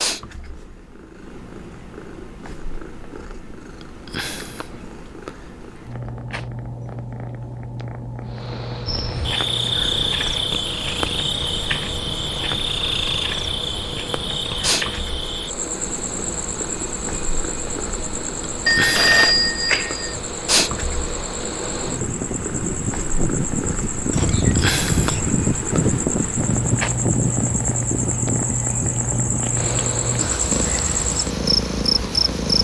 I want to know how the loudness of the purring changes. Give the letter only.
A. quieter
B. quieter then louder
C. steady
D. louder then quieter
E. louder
E.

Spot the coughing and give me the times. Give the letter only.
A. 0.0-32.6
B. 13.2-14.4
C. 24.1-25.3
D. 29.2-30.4
C.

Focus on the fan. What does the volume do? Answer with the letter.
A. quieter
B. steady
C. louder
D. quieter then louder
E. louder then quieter
E.